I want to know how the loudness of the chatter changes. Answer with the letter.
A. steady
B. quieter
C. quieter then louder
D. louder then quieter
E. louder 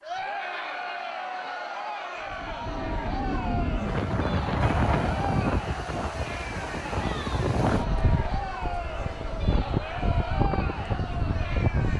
A.